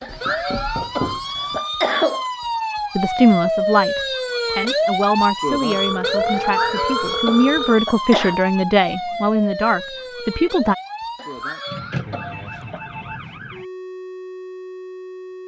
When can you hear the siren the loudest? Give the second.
5 s.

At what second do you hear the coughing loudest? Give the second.
2 s.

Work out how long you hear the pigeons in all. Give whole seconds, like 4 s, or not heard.
not heard.